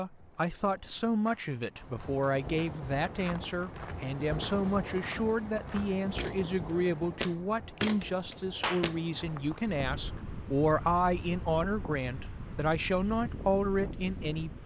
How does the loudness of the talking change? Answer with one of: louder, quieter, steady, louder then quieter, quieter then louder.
steady.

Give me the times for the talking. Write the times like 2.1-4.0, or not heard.
0.0-14.6.